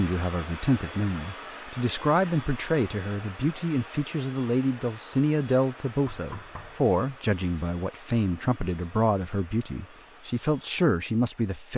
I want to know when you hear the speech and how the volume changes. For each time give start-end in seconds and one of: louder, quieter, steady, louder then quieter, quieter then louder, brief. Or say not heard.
0.0-11.7 steady.